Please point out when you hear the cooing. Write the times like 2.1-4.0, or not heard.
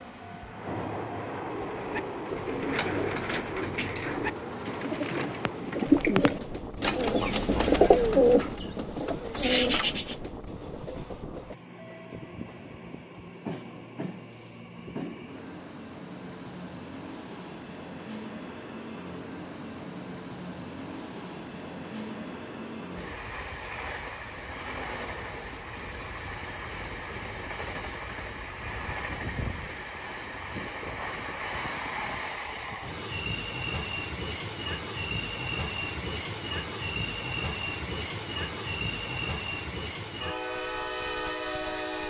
1.8-10.2.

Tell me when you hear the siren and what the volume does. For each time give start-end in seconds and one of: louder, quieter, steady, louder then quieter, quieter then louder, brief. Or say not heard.
not heard.